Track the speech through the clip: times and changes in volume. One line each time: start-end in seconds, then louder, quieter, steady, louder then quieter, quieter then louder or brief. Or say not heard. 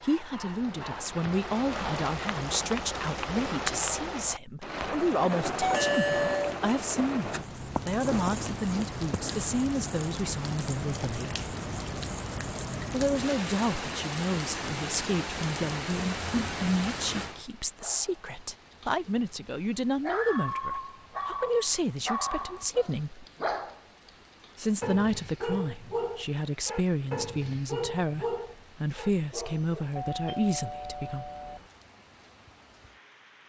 0.0-11.5 steady
12.9-23.2 steady
24.6-31.3 steady.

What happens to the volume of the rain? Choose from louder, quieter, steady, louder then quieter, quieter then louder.
quieter.